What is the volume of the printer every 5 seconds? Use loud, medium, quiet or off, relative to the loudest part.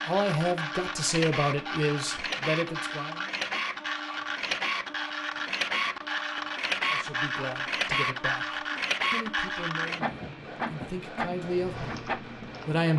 loud, loud, medium.